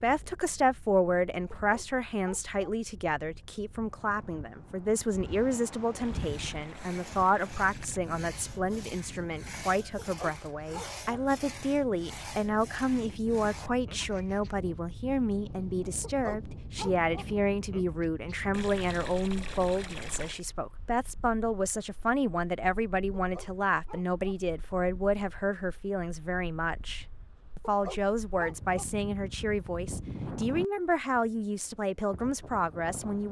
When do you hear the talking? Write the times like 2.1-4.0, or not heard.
0.0-33.2.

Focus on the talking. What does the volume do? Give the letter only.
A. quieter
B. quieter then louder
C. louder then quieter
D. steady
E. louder
D.